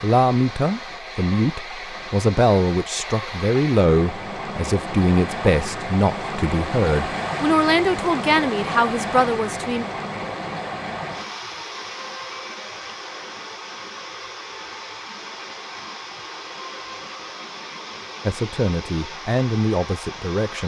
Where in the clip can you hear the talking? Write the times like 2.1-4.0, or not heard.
0.0-9.8, 18.2-20.6.